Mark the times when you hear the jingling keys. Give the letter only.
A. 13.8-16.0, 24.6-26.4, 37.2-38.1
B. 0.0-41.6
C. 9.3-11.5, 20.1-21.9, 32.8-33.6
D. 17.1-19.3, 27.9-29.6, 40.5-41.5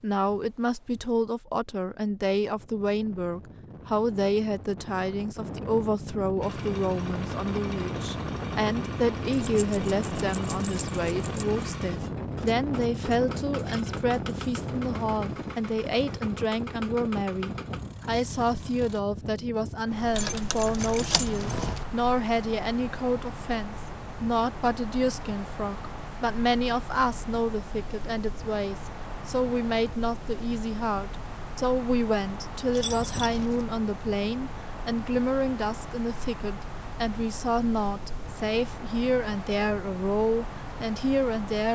C.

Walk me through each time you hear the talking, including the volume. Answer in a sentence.
You can hear the talking from 0.0 to 41.6 s, at a steady volume.